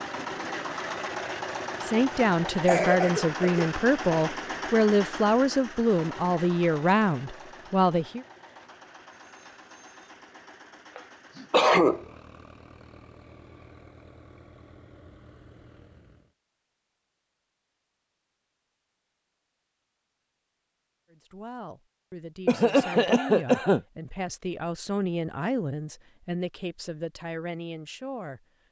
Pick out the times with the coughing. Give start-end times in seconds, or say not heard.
2.5-4.3, 10.9-12.1, 22.4-23.8.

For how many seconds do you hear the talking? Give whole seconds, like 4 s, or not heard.
14 s.